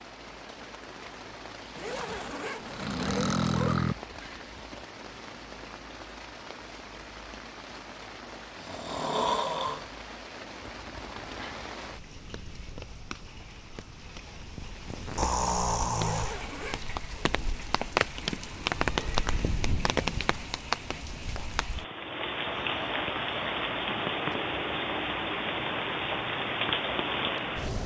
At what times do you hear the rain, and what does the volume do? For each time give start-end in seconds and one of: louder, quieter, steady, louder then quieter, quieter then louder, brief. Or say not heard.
0.0-27.8 louder.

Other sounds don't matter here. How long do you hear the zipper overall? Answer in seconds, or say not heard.
3 s.